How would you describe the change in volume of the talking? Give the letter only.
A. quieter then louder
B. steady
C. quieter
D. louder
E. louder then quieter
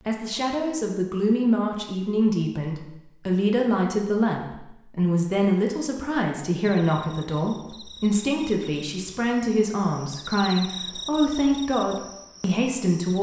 B.